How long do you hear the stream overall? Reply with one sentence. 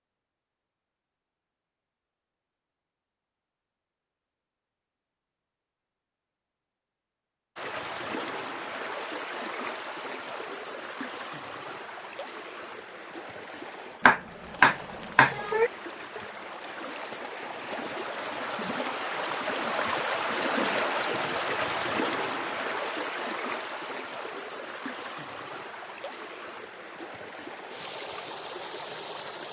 The stream can be heard for 22 seconds in total.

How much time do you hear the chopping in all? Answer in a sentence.
The chopping can be heard for 2 seconds in total.